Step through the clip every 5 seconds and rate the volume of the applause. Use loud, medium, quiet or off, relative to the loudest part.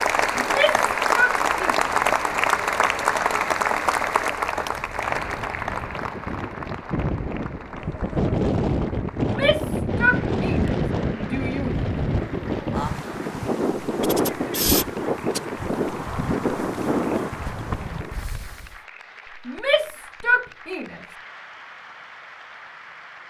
loud, medium, quiet, quiet, quiet.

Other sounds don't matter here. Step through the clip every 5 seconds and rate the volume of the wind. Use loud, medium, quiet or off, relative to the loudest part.
quiet, loud, loud, loud, off.